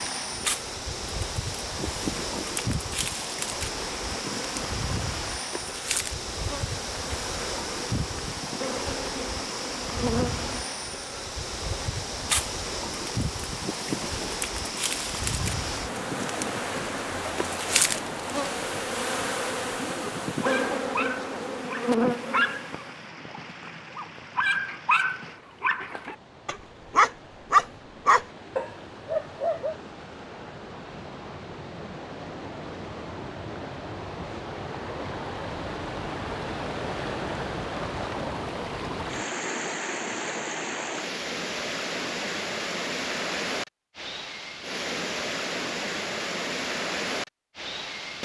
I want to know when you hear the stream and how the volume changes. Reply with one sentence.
You can hear the stream from 0.0 to 48.2 s, getting quieter then louder.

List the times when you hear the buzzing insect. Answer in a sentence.
You can hear the buzzing insect from 0.1 to 22.9 s.